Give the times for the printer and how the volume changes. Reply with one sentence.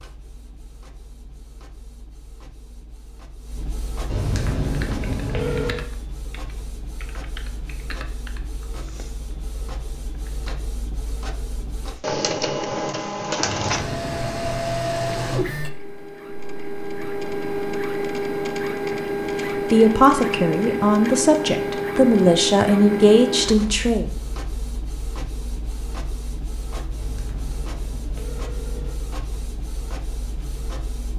You can hear the printer from 0.0 to 31.1 s, getting louder then quieter.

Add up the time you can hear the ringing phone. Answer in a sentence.
You can hear the ringing phone for 5 seconds altogether.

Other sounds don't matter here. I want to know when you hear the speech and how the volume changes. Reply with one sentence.
You can hear the speech from 19.5 to 24.1 s, at a steady volume.